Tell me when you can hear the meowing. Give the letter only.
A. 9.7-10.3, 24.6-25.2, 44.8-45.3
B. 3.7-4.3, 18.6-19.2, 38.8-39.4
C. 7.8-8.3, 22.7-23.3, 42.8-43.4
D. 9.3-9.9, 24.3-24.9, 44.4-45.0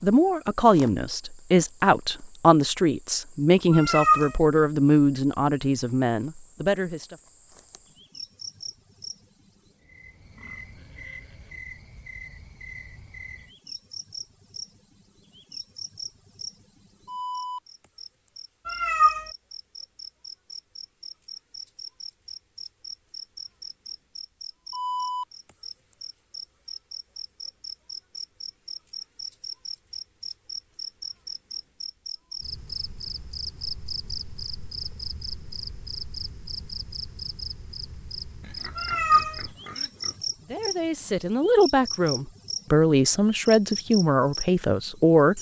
B.